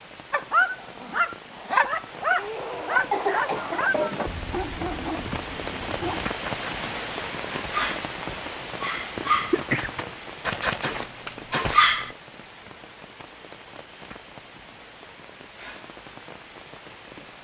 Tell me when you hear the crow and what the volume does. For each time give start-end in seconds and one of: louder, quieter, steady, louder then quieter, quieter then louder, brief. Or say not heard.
not heard.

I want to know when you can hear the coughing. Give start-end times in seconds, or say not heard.
2.4-4.3, 9.2-9.9.